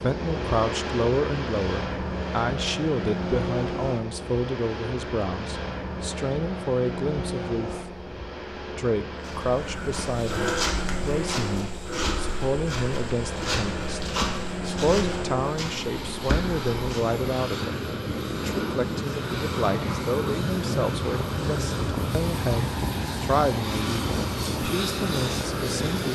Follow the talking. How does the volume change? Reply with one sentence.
The volume of the talking stays about the same.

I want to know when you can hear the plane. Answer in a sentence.
The plane can be heard from 0.0 to 26.0 s.